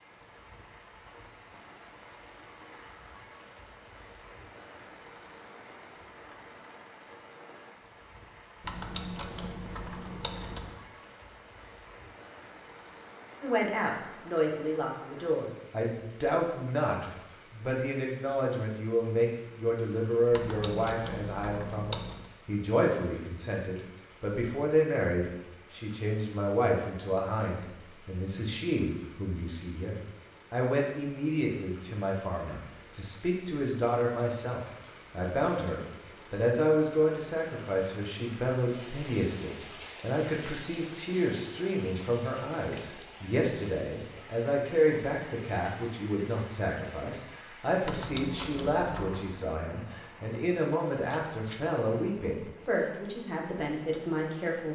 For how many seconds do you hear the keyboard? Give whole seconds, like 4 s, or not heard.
6 s.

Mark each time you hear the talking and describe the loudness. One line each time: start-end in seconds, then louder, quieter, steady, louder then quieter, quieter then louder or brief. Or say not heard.
13.4-54.6 steady.